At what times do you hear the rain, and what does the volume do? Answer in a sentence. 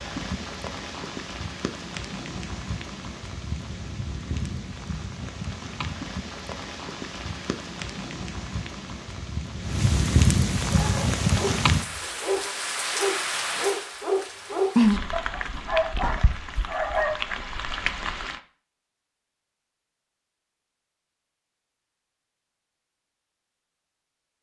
You can hear the rain from 0.0 to 18.4 s, getting louder.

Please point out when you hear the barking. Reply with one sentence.
The barking can be heard from 10.7 to 17.1 s.